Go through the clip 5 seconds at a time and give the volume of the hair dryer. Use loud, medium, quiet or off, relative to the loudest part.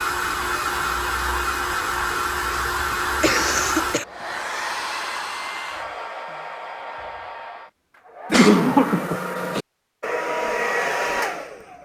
loud, medium, loud.